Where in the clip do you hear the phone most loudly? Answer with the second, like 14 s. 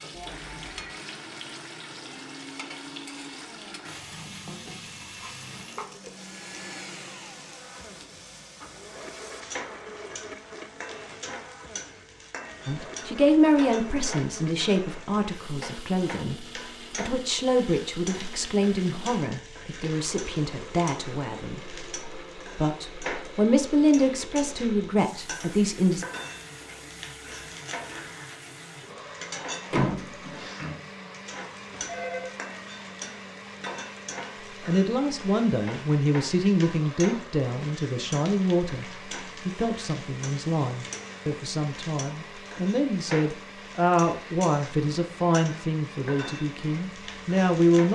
32 s.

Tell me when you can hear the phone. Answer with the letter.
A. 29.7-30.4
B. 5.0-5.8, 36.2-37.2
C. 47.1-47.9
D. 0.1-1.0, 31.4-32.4
D.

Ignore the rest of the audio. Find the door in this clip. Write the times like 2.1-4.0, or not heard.
29.7-30.4.